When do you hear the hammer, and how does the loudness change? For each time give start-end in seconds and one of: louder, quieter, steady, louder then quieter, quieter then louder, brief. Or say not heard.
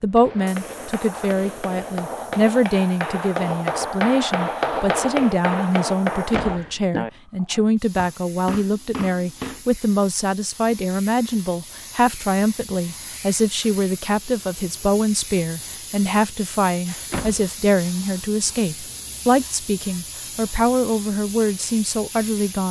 0.1-9.7 louder then quieter.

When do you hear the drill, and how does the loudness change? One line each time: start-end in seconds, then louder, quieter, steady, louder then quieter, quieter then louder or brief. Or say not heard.
not heard.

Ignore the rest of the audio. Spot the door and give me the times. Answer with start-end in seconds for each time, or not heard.
6.3-6.8, 17.1-17.6.